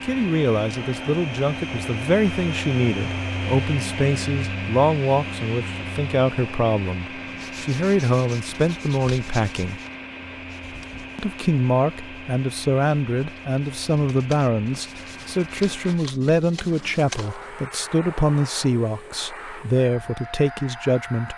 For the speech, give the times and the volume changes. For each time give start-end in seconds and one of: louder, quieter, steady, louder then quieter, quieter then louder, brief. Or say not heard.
0.0-9.8 steady
11.2-21.3 steady.